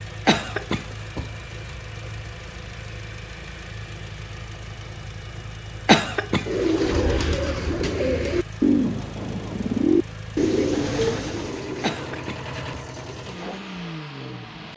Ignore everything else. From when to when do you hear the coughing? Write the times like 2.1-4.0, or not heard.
0.2-1.8, 5.8-6.5, 11.8-12.8.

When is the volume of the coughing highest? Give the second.
6 s.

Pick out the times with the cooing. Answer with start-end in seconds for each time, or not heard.
6.5-13.7.